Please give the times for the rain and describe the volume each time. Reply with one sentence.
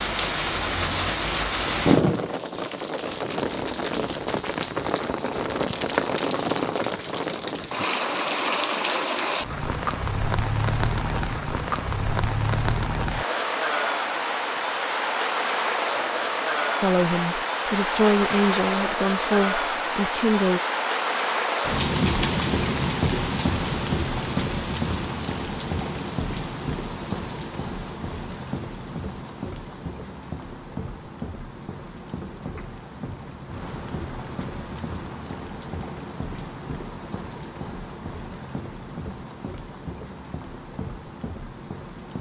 The rain can be heard from 0.0 to 42.1 s, getting quieter.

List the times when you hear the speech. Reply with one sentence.
The speech can be heard from 16.8 to 20.6 s.